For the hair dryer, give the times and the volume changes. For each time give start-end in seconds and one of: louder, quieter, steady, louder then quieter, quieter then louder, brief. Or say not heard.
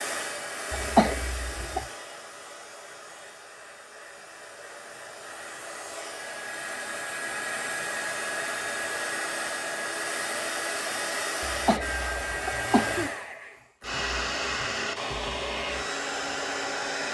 0.0-17.0 louder.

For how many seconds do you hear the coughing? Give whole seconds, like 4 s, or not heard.
3 s.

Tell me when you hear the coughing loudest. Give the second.
1 s.